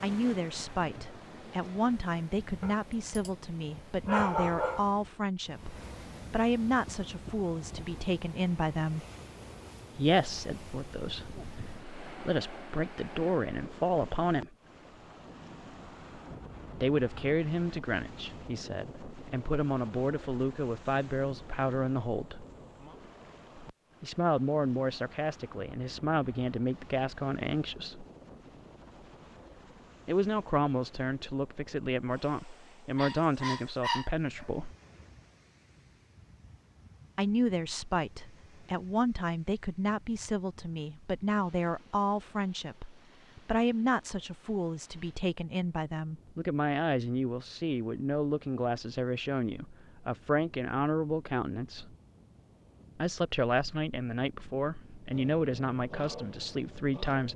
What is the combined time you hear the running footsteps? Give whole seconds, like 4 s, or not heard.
not heard.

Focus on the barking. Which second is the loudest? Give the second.
4 s.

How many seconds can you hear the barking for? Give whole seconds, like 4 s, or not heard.
4 s.